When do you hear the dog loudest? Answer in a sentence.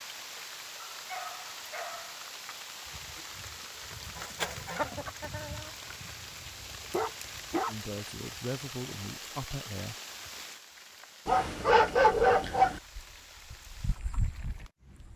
The loudest moment of the dog is at 12 seconds.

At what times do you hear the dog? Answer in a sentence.
You can hear the dog from 0.9 to 2.2 s, from 6.5 to 7.8 s and from 11.2 to 12.8 s.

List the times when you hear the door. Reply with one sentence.
You can't hear the door here.